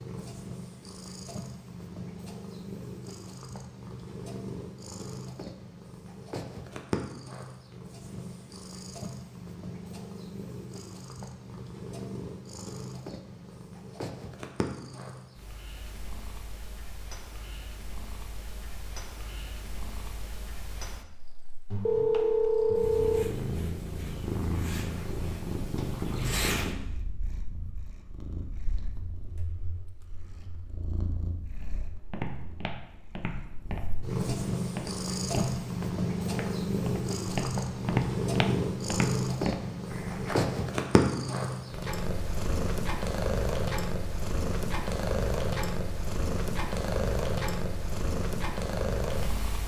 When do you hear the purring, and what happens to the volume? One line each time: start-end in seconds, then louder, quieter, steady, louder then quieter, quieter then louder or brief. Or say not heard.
0.0-49.6 louder.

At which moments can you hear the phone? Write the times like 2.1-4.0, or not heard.
21.7-23.2.